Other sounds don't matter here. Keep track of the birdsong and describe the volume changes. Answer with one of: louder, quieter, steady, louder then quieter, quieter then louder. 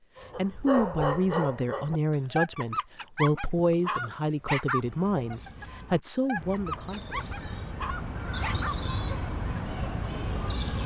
louder.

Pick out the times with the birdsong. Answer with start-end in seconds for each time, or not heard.
4.8-10.8.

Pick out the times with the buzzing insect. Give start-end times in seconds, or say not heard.
not heard.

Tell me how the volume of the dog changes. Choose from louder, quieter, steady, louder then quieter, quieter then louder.
quieter.